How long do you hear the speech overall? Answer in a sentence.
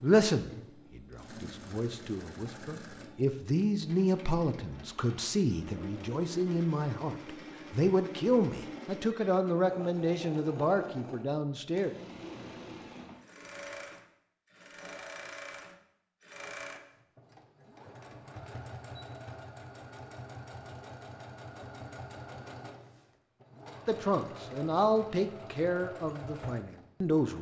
The speech can be heard for 15 seconds in total.